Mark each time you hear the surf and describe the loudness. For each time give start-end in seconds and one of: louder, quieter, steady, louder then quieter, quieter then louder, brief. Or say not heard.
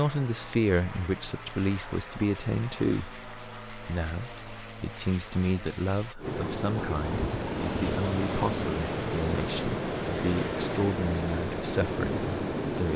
6.2-12.9 steady.